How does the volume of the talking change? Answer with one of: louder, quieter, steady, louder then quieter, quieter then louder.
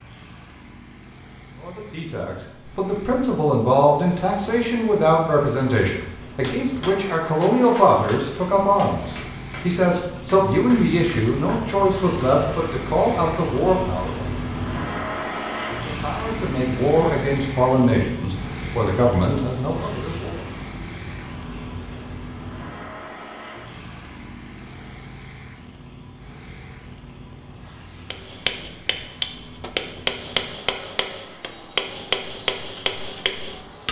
steady.